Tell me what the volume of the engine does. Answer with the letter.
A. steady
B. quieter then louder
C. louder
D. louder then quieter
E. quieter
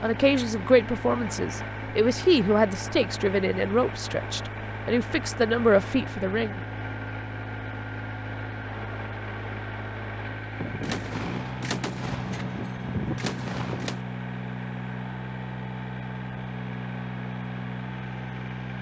A.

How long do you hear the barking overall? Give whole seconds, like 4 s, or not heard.
not heard.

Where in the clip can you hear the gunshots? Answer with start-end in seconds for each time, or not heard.
10.6-14.0.